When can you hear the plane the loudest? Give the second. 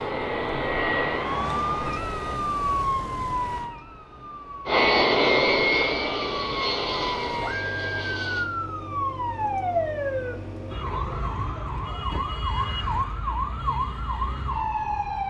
5 s.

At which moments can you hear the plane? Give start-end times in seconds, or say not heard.
0.0-2.4, 4.7-8.5.